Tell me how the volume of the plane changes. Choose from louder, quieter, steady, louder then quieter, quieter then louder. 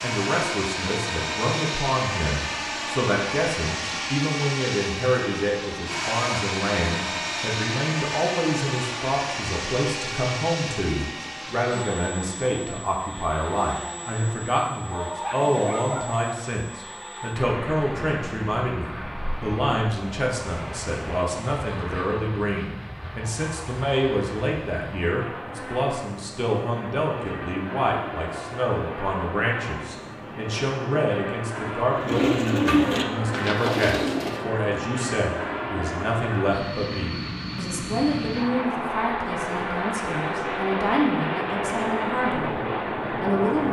quieter then louder.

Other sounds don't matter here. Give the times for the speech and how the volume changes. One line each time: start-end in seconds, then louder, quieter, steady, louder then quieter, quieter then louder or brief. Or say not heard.
0.0-43.6 steady.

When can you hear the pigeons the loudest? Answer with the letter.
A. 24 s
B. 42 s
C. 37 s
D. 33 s
D.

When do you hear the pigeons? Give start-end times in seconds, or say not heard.
31.9-34.5.